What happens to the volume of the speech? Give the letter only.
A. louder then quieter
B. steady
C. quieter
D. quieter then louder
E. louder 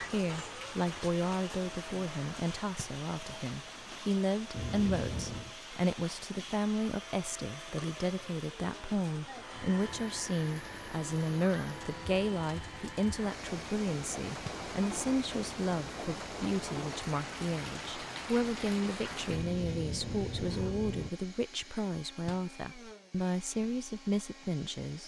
B.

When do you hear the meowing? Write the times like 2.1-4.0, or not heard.
4.5-5.5, 9.5-10.2, 19.2-21.1.